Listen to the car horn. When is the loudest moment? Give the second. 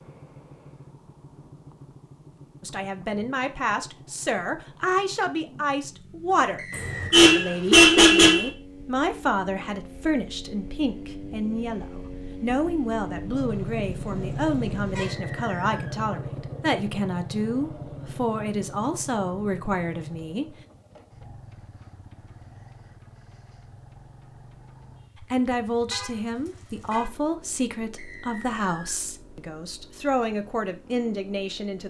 8 s.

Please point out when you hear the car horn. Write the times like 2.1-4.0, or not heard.
6.7-8.5, 13.4-15.1, 25.9-27.1.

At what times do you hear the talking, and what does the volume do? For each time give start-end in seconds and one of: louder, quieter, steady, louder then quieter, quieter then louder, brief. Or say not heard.
2.6-20.6 steady
25.2-31.8 steady.